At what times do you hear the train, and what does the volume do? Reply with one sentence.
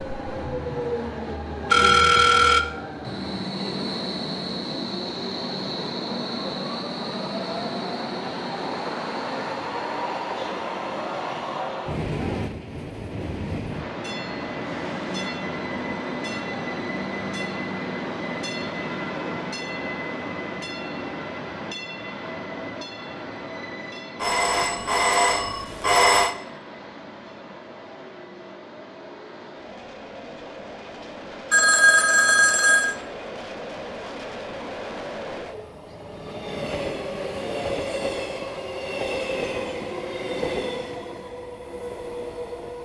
You can hear the train from 0.0 to 42.8 s, getting quieter then louder.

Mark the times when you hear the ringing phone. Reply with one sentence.
The ringing phone can be heard from 1.7 to 2.6 s, from 24.2 to 26.4 s and from 31.5 to 33.0 s.